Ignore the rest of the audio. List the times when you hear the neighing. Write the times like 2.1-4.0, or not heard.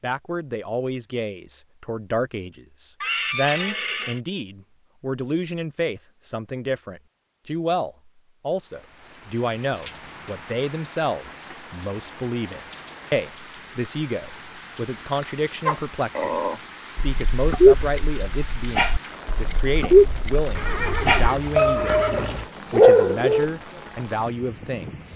3.0-4.2, 20.6-22.5.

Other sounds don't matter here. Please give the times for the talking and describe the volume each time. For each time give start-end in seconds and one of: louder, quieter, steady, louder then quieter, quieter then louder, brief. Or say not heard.
0.0-22.0 steady
22.7-25.1 brief.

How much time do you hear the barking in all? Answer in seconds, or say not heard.
8 s.